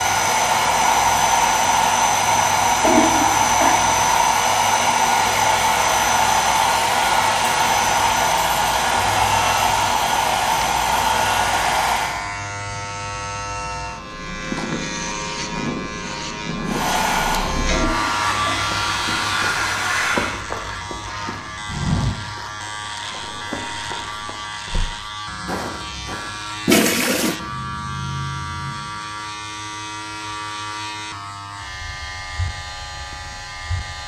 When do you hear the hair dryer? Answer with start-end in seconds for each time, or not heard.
0.0-12.2, 16.6-20.4.